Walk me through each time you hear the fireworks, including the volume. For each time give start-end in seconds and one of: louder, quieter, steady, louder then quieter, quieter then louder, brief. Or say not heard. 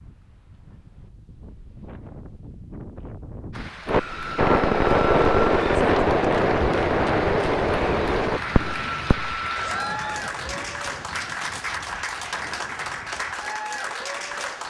3.9-9.8 quieter.